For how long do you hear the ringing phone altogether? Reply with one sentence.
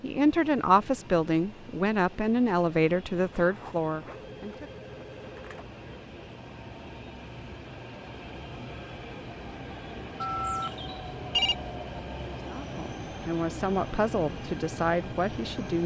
You can hear the ringing phone for 4 seconds altogether.